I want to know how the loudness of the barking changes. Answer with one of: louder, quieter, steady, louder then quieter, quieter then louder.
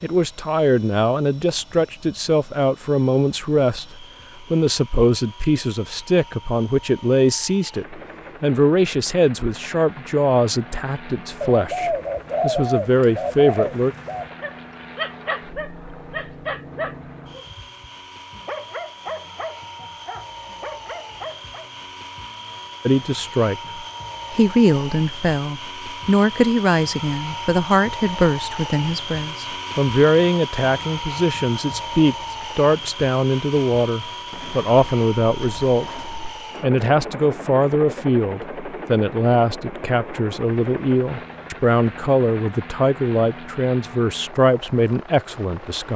quieter.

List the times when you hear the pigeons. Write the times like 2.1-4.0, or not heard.
11.4-14.3, 34.3-36.4.